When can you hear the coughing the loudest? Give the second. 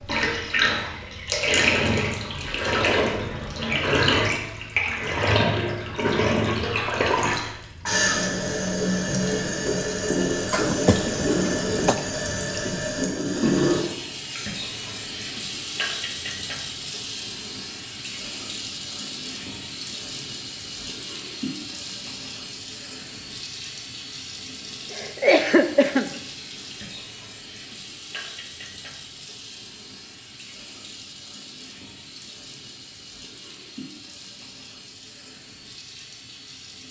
25 s.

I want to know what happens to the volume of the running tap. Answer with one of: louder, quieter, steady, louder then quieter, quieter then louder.
quieter.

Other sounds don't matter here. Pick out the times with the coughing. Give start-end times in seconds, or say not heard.
10.5-11.9, 24.9-26.1.